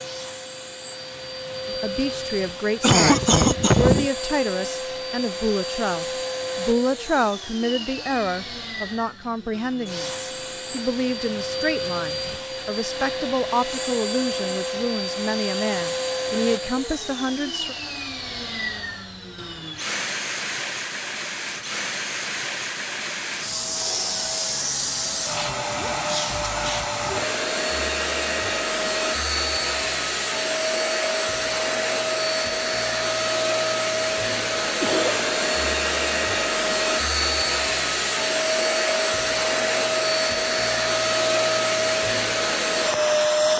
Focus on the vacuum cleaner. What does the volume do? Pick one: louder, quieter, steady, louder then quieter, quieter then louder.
louder.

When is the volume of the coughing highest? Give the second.
3 s.